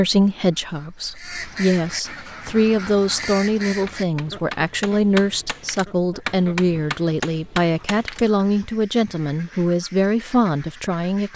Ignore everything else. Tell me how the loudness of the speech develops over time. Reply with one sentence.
The volume of the speech stays about the same.